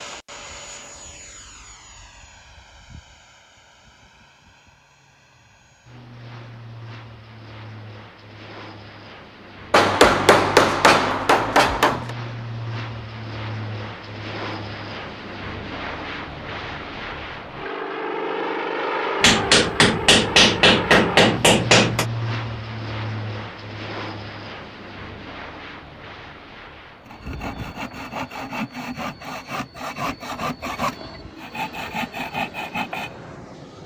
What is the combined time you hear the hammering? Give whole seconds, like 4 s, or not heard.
5 s.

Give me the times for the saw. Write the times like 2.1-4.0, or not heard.
27.1-33.1.